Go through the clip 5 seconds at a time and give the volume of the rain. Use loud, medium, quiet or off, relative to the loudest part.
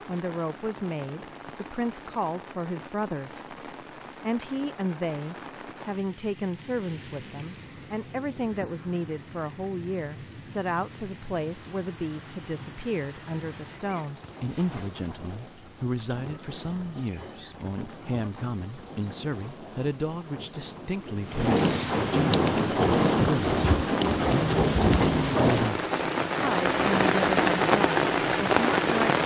quiet, quiet, quiet, quiet, loud, loud.